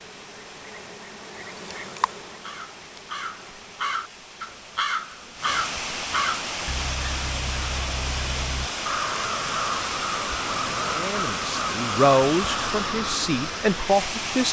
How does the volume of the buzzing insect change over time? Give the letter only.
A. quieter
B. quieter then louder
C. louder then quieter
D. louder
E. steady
C.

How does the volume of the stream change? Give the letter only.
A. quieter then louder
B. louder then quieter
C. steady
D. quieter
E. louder
E.